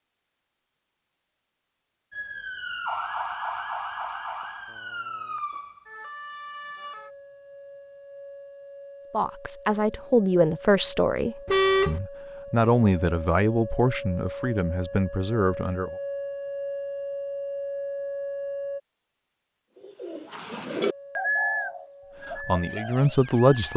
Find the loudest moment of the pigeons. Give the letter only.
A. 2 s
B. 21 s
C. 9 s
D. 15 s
B.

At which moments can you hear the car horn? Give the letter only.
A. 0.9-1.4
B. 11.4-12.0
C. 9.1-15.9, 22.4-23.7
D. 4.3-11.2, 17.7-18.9
B.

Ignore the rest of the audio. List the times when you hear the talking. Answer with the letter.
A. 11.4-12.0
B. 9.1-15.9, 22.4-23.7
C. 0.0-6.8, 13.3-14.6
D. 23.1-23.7
B.